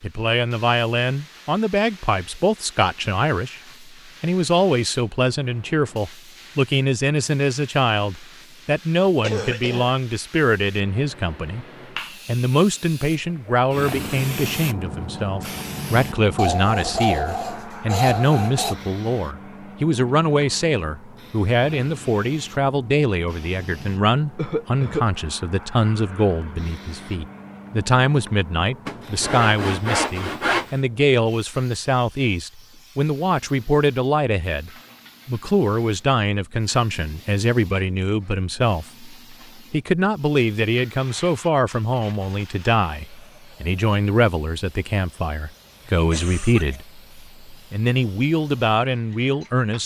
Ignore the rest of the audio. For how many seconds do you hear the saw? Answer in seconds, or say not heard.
4 s.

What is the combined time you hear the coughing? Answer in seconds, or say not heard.
2 s.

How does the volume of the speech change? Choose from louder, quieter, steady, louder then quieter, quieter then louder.
steady.